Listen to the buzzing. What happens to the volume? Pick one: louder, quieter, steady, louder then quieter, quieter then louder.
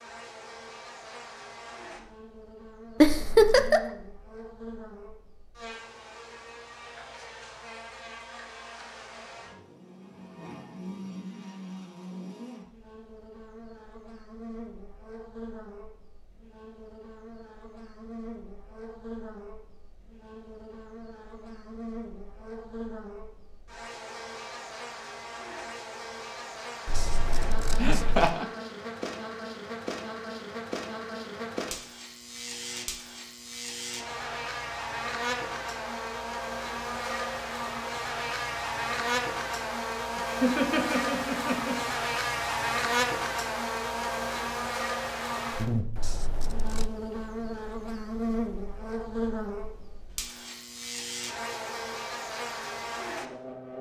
louder.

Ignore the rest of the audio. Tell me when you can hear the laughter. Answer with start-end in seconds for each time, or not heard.
3.0-3.8, 27.8-28.4, 40.2-41.9.